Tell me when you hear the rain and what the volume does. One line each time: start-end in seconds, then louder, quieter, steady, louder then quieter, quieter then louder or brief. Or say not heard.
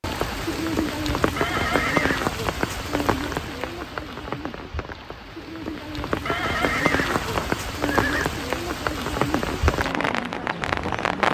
0.0-11.2 quieter then louder.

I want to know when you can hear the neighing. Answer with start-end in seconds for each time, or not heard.
1.4-2.3, 6.2-8.2.